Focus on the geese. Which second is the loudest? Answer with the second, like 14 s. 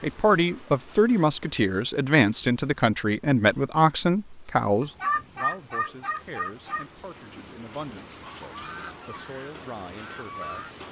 5 s.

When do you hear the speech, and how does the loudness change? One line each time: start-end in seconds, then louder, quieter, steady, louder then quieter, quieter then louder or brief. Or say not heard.
0.0-10.7 quieter.